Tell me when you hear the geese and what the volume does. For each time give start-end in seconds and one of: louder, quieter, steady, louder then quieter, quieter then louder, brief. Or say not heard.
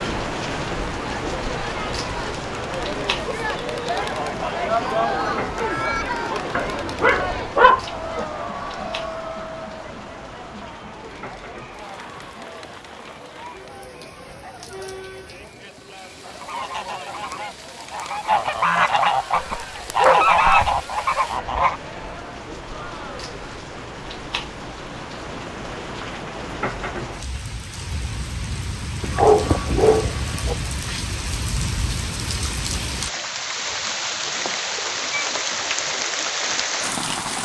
16.2-21.8 louder.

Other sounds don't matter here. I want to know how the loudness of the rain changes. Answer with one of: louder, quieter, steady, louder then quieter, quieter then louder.
quieter then louder.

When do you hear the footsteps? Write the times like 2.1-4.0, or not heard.
not heard.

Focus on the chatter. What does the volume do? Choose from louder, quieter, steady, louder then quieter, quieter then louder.
quieter.